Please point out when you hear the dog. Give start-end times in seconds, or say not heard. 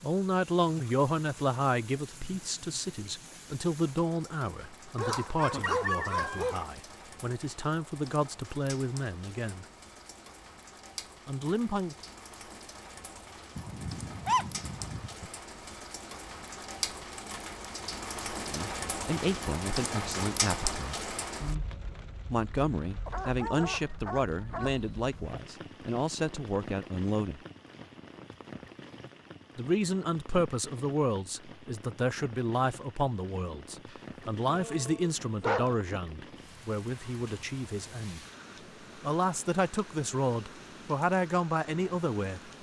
5.0-6.7, 13.6-15.3, 23.1-24.9, 33.9-35.8.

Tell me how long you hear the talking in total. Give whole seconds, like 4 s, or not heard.
30 s.